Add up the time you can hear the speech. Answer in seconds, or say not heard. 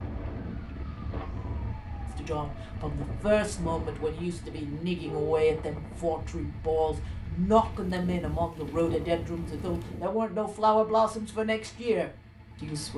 11 s.